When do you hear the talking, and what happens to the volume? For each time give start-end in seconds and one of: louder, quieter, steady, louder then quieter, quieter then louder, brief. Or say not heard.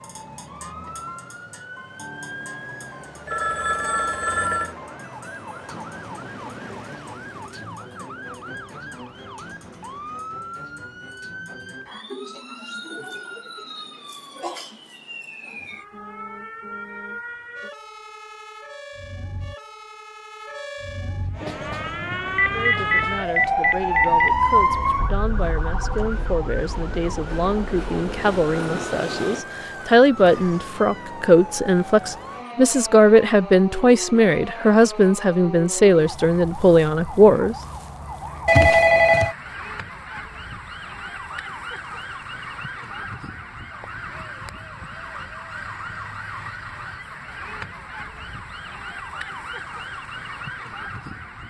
22.5-37.5 louder.